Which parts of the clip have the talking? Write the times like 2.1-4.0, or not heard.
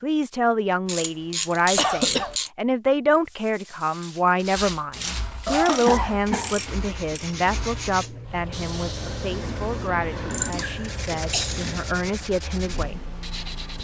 0.0-13.1.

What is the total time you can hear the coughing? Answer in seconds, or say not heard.
3 s.